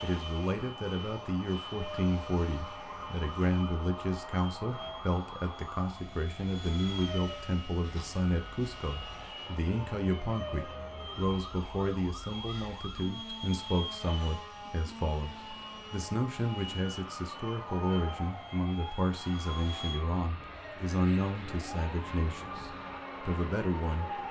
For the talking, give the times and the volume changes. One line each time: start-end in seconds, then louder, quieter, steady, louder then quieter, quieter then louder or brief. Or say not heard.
0.0-24.1 steady.